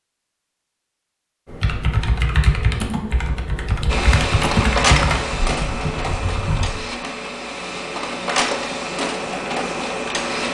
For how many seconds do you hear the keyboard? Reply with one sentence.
The keyboard can be heard for 5 seconds in total.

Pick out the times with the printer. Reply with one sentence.
You can hear the printer from 3.9 to 10.4 s.